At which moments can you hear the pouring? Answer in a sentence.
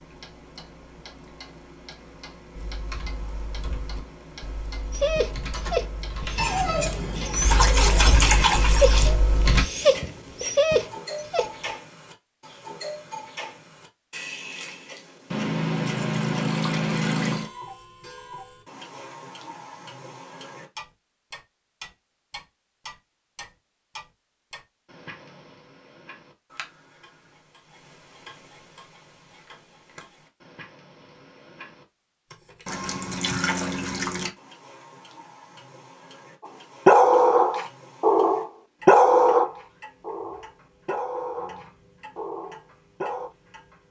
You can hear the pouring from 6.3 to 9.1 s, from 15.3 to 17.5 s and from 32.6 to 34.3 s.